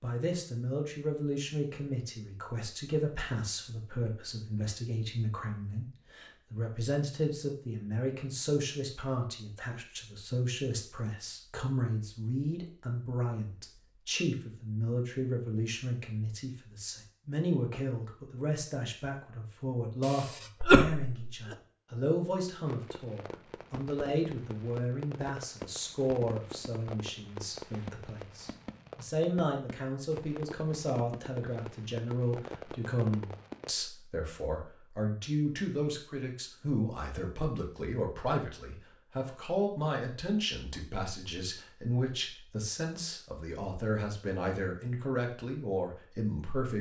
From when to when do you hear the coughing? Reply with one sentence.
The coughing can be heard from 20.0 to 21.6 s.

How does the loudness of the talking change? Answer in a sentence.
The volume of the talking stays about the same.